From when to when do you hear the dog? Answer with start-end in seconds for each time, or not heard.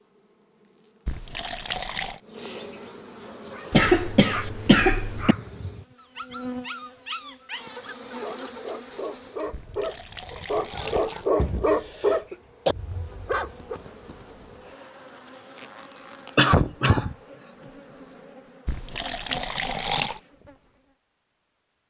3.2-13.8.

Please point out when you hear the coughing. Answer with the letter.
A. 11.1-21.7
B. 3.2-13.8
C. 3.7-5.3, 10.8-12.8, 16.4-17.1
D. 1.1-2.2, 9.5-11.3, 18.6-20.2
C.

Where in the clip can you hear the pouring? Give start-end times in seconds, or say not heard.
1.1-2.2, 9.5-11.3, 18.6-20.2.